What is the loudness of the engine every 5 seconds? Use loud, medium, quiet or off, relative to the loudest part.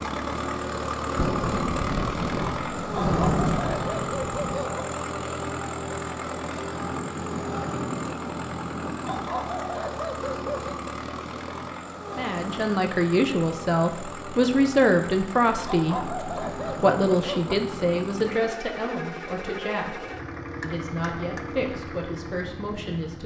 loud, loud, medium, medium, medium.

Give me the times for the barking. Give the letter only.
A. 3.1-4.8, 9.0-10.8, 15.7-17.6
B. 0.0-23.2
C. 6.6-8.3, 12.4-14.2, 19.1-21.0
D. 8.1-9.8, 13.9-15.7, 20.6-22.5
A.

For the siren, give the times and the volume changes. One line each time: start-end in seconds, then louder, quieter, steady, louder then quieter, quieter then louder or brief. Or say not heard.
not heard.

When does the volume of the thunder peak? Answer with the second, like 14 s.
3 s.